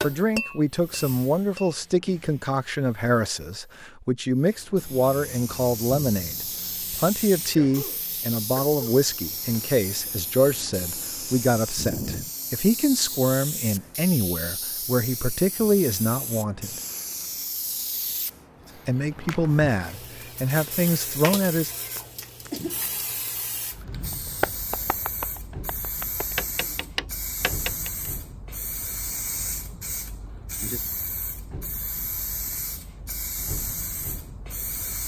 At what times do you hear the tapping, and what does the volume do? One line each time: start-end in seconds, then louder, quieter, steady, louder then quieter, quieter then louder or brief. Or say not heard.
0.0-2.1 brief
24.1-28.1 louder.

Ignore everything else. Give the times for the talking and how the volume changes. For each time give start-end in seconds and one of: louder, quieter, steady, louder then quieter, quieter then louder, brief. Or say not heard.
0.0-16.8 steady
18.9-21.7 brief.